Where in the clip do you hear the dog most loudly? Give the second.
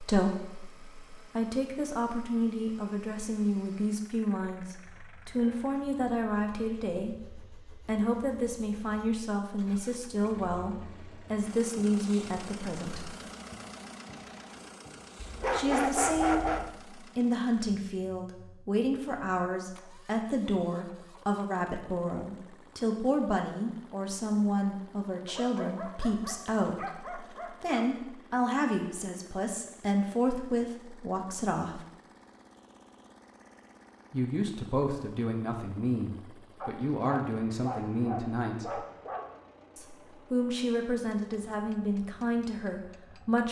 16 s.